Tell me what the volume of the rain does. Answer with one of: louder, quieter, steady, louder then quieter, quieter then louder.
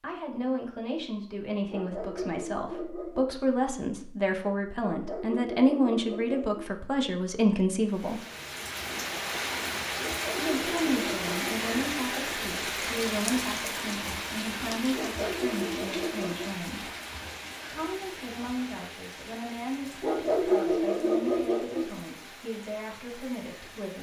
quieter.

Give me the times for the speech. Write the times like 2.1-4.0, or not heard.
0.0-8.2, 10.3-16.9, 17.6-23.9.